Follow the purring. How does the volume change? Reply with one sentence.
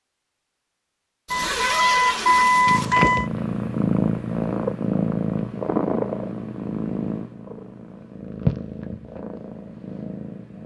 The loudness of the purring goes down.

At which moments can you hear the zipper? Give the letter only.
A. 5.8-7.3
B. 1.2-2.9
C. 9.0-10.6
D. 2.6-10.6
B.